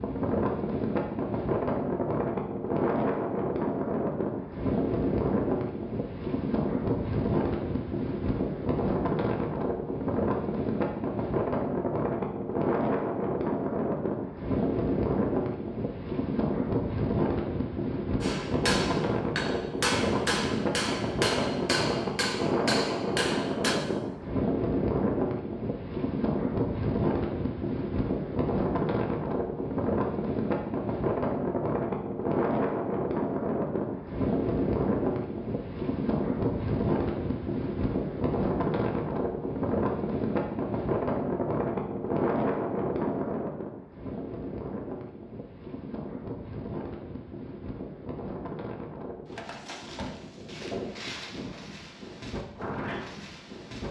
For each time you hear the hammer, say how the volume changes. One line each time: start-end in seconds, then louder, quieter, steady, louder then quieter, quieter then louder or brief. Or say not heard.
18.2-23.8 steady.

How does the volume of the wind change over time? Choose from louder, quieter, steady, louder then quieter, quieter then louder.
quieter.